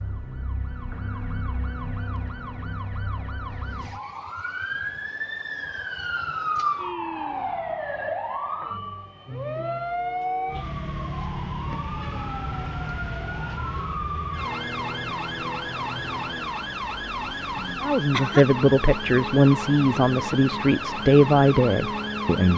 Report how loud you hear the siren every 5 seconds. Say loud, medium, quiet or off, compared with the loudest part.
medium, loud, loud, loud, loud.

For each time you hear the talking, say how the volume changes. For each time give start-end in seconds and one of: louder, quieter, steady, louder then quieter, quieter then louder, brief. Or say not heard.
17.8-22.5 steady.